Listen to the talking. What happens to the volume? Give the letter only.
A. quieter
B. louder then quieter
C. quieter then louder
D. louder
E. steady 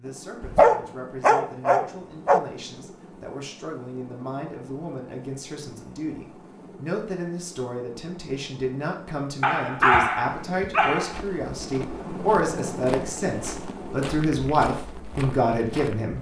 D.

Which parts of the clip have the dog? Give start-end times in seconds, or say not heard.
0.4-2.4, 9.4-11.2.